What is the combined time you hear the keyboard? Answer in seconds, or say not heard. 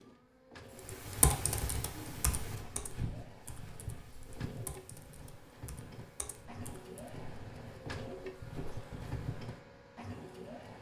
6 s.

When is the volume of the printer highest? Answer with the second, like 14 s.
8 s.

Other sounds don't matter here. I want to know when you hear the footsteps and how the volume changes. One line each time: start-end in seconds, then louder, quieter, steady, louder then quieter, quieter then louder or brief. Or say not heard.
1.9-9.6 quieter then louder.